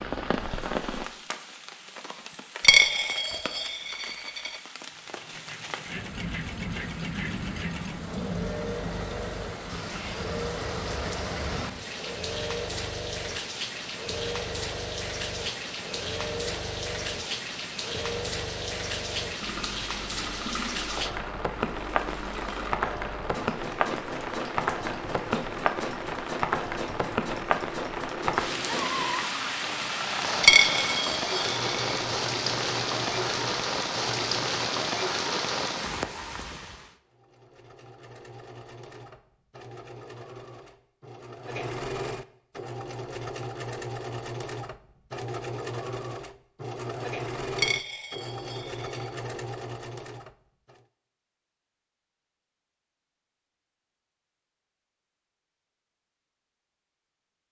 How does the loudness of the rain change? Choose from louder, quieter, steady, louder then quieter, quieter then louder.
louder.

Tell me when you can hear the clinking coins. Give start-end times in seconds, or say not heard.
2.6-4.5, 30.4-31.8, 47.5-49.1.